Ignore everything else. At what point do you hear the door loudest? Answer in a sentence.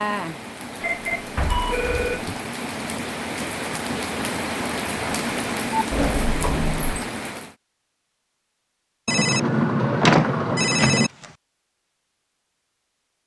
The volume of the door peaks at 10 seconds.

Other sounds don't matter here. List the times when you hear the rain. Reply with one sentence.
You can hear the rain from 0.0 to 7.5 s.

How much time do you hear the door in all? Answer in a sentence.
The door can be heard for 3 seconds in total.